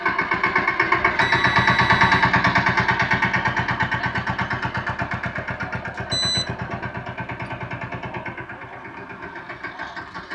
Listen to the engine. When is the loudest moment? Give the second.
2 s.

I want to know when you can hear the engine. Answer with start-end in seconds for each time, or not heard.
0.0-10.3.